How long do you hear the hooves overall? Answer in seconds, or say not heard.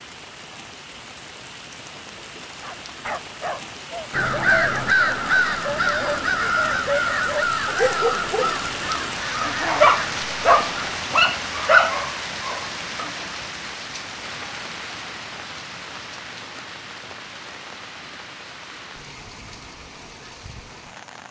not heard.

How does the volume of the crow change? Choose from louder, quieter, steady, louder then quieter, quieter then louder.
quieter.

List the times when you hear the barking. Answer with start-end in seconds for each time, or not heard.
2.6-8.6, 9.4-13.2.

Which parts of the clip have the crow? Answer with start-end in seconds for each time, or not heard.
4.1-11.0.